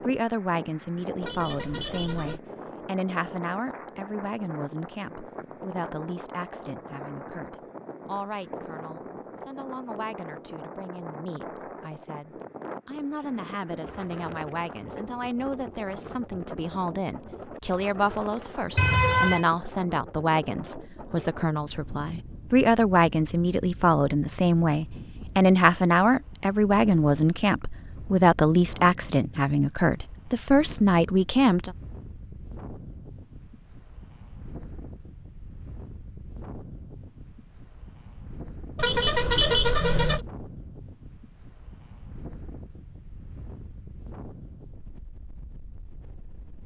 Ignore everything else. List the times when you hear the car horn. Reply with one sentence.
You can hear the car horn from 1.2 to 2.4 s, from 18.8 to 19.4 s and from 38.8 to 40.2 s.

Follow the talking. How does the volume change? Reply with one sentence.
The volume of the talking goes down, then up.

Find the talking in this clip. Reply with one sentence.
The talking can be heard from 0.1 to 31.7 s.